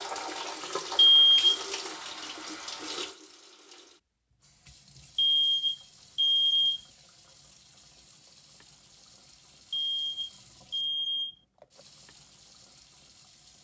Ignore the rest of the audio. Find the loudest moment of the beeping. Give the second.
1 s.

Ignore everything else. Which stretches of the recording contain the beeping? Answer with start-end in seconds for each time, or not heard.
0.9-1.6, 5.2-6.8, 9.7-11.3.